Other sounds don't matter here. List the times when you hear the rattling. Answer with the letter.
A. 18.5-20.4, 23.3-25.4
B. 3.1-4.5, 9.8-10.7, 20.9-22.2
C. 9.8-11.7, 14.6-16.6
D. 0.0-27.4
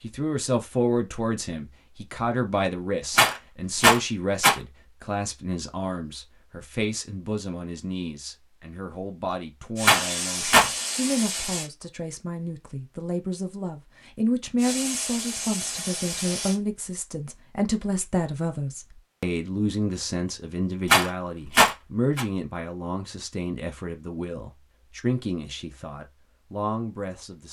B.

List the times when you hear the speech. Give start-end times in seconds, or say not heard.
0.0-27.4.